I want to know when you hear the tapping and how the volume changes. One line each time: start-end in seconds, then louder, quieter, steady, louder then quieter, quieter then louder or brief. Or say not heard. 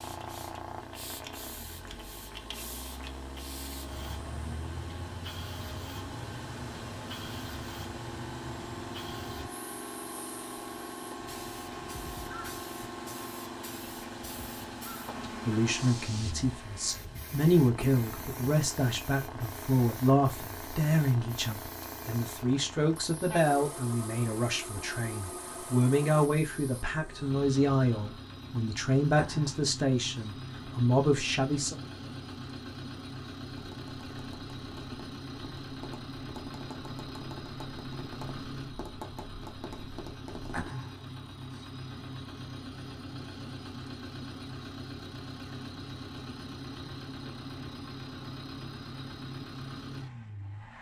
33.5-40.7 louder.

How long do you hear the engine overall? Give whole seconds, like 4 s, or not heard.
51 s.